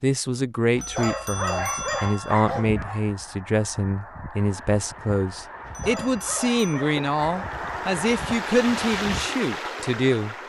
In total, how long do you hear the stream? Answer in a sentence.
The stream can be heard for 6 seconds in total.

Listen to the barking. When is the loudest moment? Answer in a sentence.
The volume of the barking peaks at 2 seconds.